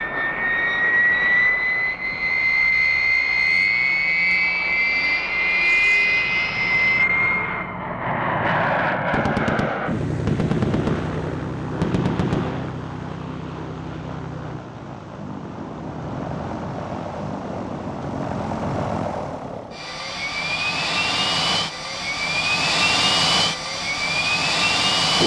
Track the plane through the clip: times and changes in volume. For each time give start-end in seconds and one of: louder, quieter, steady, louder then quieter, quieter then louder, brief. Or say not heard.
0.0-25.2 quieter then louder.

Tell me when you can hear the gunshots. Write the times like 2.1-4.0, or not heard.
9.1-12.7.